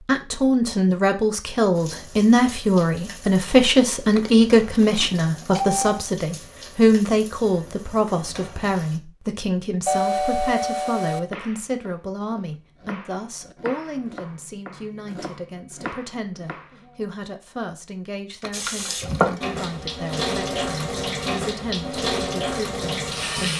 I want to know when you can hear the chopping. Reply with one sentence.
The chopping can be heard from 11.1 to 17.1 s.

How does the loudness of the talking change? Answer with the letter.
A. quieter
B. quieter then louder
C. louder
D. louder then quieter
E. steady
A.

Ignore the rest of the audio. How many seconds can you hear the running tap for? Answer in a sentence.
You can hear the running tap for 12 seconds altogether.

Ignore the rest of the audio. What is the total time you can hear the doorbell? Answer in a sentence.
You can hear the doorbell for 4 seconds altogether.